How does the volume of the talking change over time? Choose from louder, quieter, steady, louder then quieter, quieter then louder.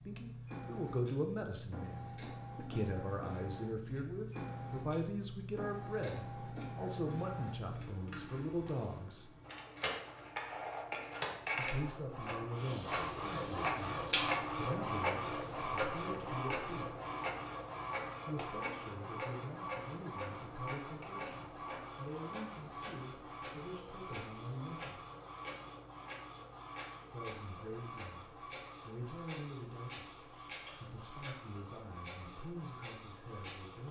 quieter.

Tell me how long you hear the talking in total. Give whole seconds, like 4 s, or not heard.
28 s.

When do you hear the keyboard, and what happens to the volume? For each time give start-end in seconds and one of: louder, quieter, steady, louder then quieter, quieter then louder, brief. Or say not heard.
not heard.